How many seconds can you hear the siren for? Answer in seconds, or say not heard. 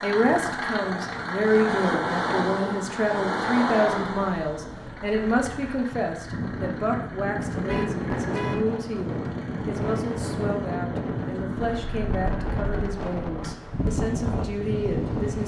not heard.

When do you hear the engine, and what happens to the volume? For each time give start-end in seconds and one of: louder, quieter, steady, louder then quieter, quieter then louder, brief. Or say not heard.
0.0-15.3 quieter.